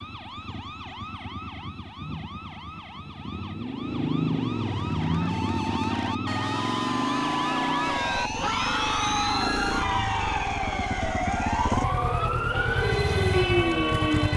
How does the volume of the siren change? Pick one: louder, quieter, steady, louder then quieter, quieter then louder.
louder.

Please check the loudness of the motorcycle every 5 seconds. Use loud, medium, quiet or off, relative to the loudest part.
medium, loud, loud.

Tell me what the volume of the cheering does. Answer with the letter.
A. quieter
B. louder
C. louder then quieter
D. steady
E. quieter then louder
C.